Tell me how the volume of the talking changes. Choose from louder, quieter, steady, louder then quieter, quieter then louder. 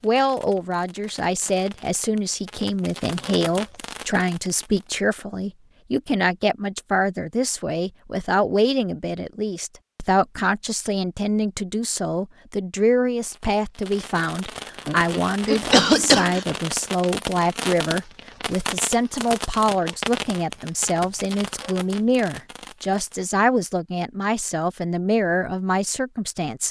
steady.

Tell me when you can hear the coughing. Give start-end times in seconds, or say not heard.
14.8-16.4.